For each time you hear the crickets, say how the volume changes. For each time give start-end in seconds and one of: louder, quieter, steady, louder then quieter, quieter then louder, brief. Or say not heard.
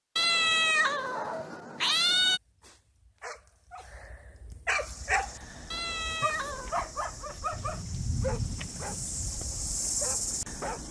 4.8-10.8 louder.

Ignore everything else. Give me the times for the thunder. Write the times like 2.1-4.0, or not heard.
7.5-9.4.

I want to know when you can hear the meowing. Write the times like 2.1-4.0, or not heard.
0.1-2.4, 5.7-6.8.